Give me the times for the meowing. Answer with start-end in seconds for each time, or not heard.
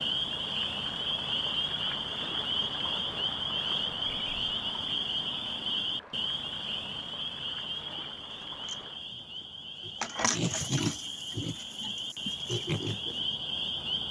not heard.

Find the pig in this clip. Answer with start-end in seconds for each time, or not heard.
7.7-13.2.